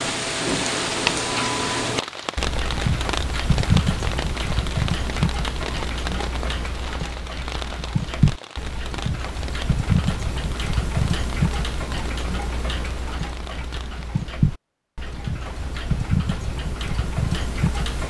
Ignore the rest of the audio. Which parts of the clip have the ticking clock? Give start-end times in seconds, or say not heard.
0.0-18.0.